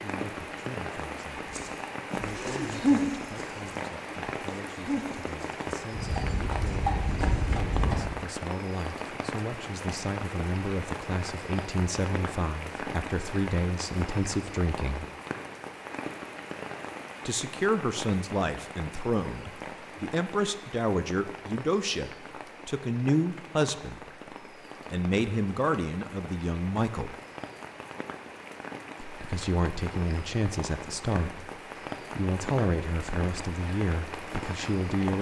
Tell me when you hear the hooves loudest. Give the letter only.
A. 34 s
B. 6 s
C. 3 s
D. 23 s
C.